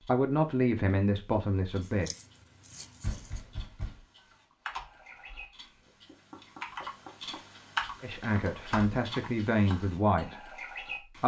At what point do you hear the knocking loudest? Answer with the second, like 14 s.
3 s.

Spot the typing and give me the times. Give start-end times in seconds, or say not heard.
4.7-5.9, 6.6-9.8.